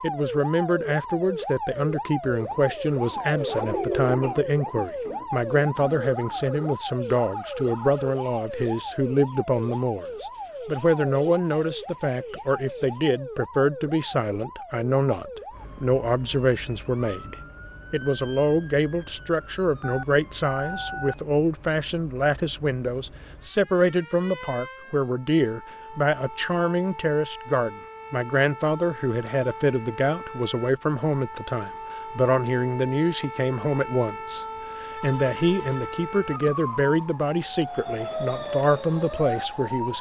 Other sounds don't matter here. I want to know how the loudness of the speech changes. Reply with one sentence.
The loudness of the speech stays about the same.